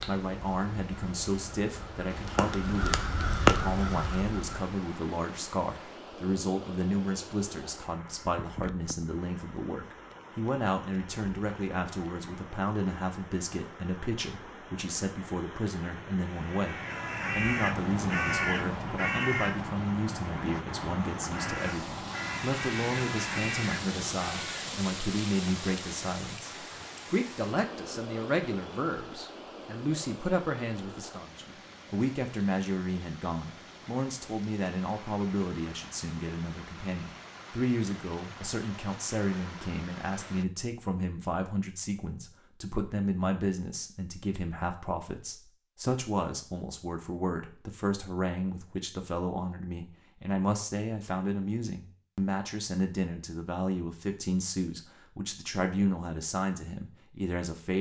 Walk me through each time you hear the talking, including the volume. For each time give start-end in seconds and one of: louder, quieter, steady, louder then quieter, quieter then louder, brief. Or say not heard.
0.1-57.7 steady.